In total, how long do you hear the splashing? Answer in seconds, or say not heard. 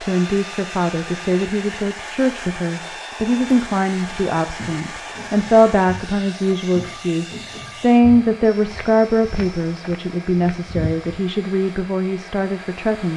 not heard.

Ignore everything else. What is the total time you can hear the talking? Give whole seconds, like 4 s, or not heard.
13 s.